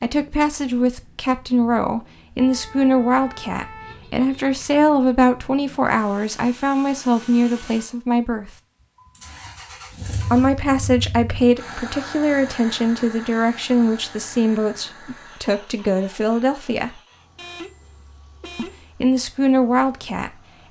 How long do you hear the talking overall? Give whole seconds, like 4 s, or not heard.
17 s.